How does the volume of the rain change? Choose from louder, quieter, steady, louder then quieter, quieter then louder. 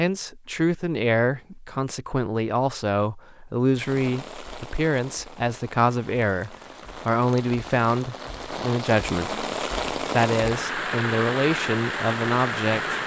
louder.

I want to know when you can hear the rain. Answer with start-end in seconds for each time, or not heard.
3.7-13.0.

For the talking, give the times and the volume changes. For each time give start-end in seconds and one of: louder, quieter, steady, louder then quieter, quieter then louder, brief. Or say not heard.
0.0-13.0 steady.